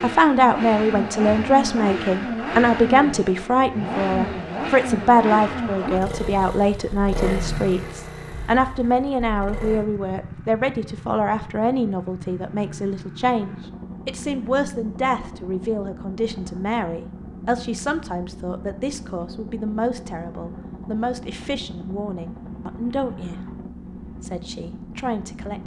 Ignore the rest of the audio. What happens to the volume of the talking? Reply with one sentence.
The volume of the talking goes down.